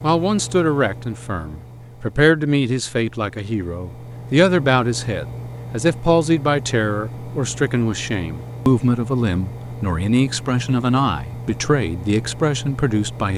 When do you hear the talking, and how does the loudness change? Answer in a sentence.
You can hear the talking from 0.0 to 13.3 s, at a steady volume.